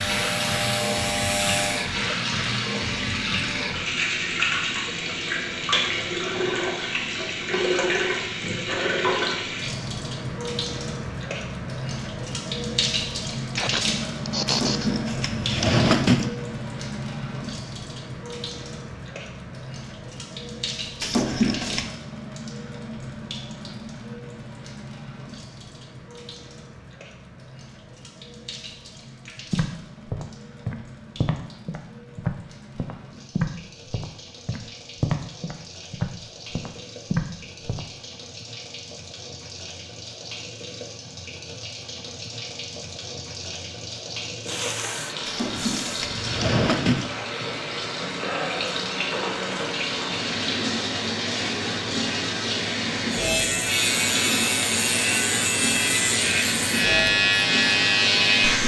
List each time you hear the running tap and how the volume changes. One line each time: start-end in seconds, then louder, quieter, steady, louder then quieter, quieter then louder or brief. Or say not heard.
0.0-58.6 quieter then louder.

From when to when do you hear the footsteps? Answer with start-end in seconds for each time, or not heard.
29.5-37.9.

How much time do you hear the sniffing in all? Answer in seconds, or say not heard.
3 s.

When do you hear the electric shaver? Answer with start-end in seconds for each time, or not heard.
0.0-1.9, 53.1-58.6.